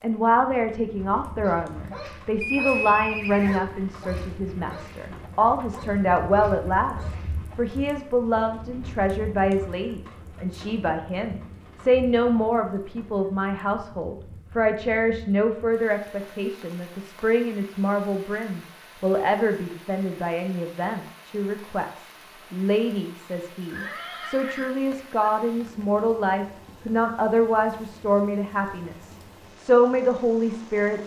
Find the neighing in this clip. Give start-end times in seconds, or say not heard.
2.4-4.3, 23.7-25.3.